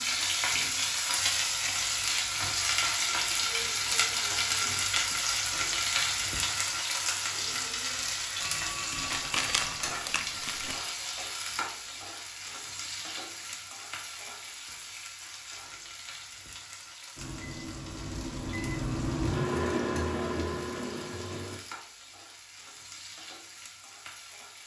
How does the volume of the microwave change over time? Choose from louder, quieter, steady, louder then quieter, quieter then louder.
louder then quieter.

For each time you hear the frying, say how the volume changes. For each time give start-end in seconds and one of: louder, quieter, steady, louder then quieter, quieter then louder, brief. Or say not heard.
0.0-24.6 quieter.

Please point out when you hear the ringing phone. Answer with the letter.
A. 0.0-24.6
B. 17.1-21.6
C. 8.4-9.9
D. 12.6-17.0
C.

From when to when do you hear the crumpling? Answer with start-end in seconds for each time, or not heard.
8.9-10.8.